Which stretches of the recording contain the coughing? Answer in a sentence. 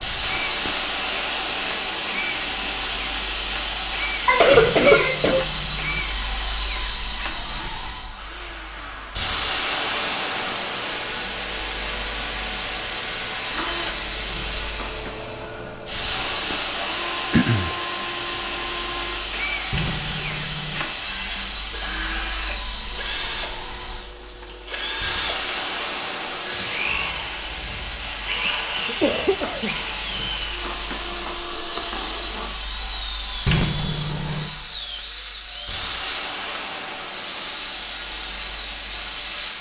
The coughing can be heard from 4.2 to 5.5 s, from 17.3 to 17.8 s and from 28.4 to 30.2 s.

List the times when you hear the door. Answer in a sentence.
You can hear the door from 4.5 to 6.0 s, from 19.7 to 20.9 s and from 33.5 to 34.5 s.